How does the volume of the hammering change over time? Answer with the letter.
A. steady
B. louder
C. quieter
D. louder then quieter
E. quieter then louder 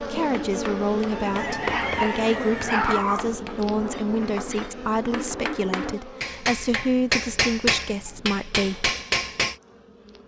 B.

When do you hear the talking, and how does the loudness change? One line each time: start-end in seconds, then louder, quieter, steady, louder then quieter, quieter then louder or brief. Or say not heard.
0.0-8.9 steady.